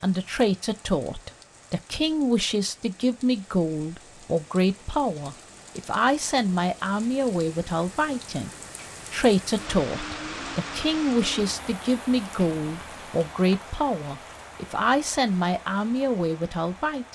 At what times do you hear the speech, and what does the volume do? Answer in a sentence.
The speech can be heard from 0.0 to 8.5 s, at a steady volume; and from 9.1 to 17.1 s, at a steady volume.